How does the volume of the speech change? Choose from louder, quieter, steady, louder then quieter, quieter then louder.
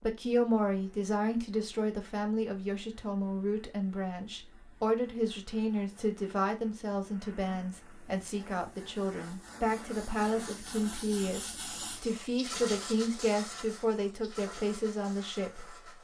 steady.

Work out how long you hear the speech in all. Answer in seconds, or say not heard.
16 s.